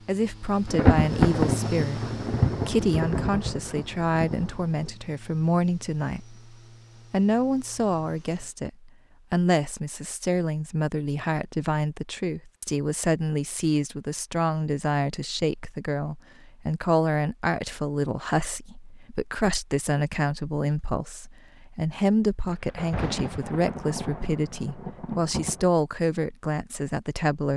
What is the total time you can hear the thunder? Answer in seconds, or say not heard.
7 s.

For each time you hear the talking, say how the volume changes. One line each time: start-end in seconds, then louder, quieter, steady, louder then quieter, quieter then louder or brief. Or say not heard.
0.1-27.5 steady.